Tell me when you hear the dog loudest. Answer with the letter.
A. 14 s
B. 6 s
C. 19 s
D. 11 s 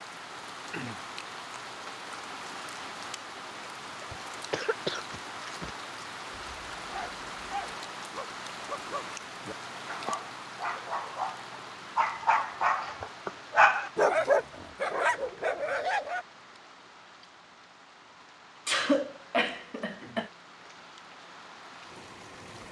A.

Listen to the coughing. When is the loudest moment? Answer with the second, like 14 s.
19 s.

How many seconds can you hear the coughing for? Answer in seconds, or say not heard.
3 s.